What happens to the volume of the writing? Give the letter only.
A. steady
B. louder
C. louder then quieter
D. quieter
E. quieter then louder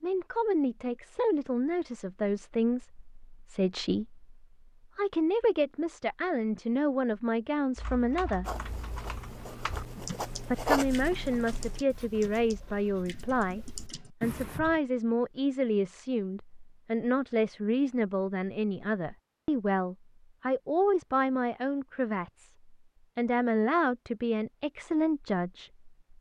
C.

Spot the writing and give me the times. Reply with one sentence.
You can hear the writing from 8.4 to 14.6 s.